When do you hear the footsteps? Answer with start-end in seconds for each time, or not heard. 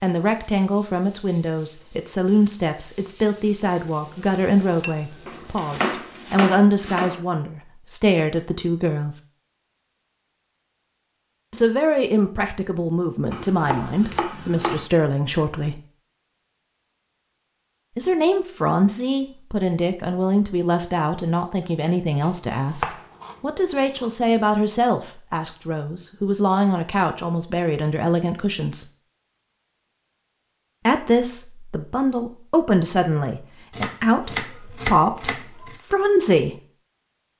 not heard.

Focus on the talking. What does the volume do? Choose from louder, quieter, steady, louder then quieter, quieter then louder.
steady.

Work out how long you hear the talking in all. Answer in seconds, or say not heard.
30 s.